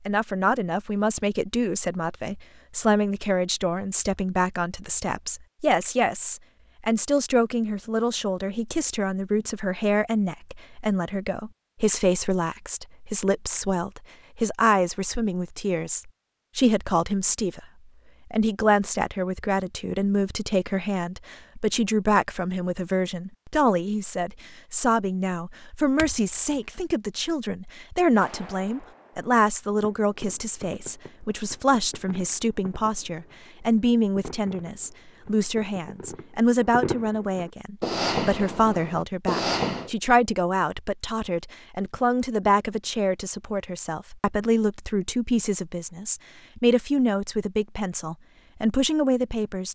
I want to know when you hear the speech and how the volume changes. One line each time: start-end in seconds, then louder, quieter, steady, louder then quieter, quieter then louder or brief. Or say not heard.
0.1-17.6 steady
18.3-49.6 steady.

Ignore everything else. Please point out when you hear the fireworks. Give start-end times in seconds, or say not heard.
28.1-39.9.